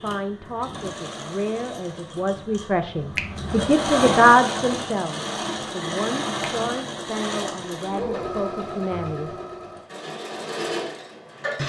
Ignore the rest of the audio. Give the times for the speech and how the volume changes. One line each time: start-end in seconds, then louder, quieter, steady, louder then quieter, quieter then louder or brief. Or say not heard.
0.0-9.3 louder then quieter.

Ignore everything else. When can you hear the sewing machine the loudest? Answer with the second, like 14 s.
4 s.